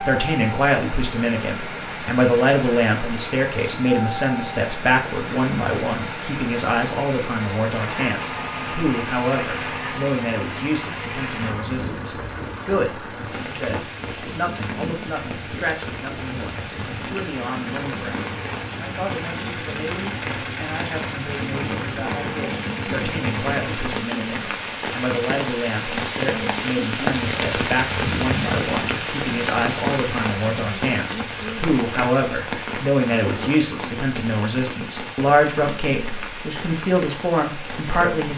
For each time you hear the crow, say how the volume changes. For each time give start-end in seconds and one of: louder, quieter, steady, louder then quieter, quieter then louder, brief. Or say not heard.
not heard.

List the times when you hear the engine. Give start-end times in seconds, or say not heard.
0.0-24.1.